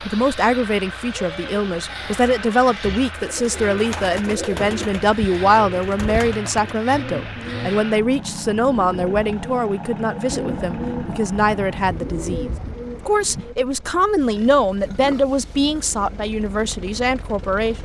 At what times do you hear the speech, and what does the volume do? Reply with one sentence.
The speech can be heard from 0.1 to 17.8 s, at a steady volume.